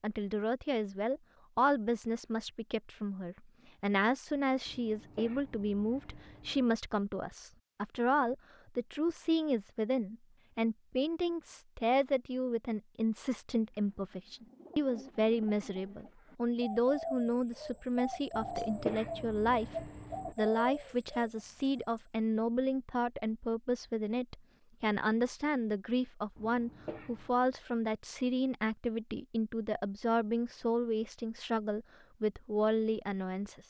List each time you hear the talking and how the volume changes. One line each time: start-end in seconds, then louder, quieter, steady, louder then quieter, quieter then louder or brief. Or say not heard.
0.0-33.6 steady.